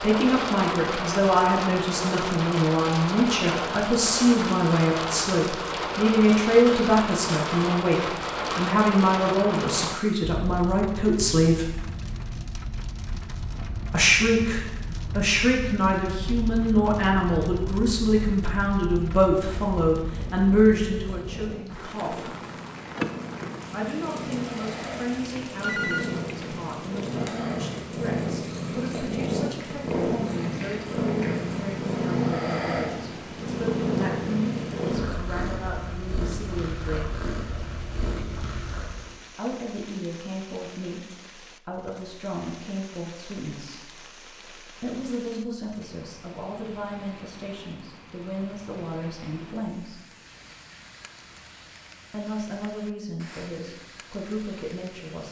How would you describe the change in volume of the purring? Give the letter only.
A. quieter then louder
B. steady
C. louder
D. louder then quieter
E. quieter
D.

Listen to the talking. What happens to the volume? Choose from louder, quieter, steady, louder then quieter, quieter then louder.
quieter.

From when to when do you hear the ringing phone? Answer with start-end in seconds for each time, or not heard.
25.6-26.6.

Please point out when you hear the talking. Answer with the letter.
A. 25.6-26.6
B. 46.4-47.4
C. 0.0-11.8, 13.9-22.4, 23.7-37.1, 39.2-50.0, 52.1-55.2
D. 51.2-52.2
C.